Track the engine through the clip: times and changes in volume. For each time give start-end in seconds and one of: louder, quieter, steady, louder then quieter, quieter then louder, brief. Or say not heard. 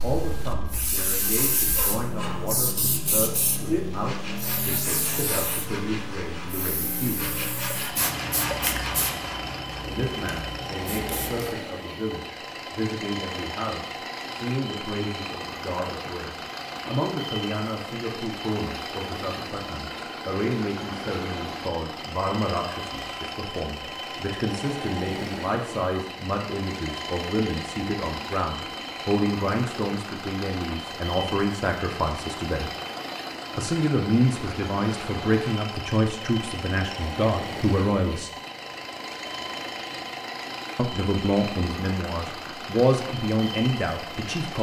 0.2-44.5 steady.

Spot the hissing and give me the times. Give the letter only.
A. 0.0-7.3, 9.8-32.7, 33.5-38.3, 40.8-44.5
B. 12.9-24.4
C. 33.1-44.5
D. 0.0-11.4
D.